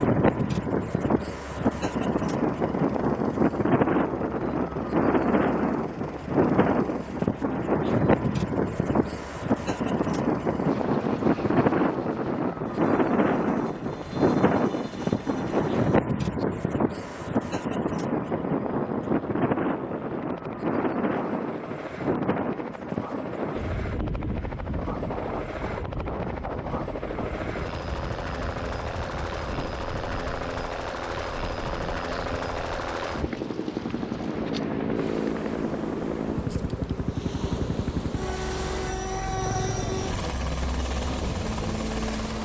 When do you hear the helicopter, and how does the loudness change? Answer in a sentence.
You can hear the helicopter from 0.0 to 42.3 s, getting louder.